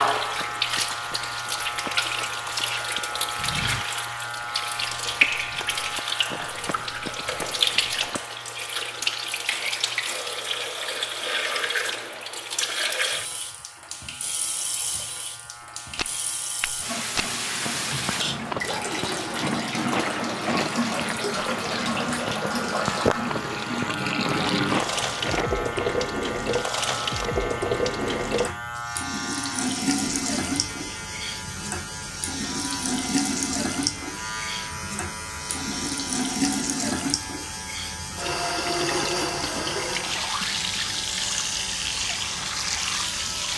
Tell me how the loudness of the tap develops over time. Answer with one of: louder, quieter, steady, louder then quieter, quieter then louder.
steady.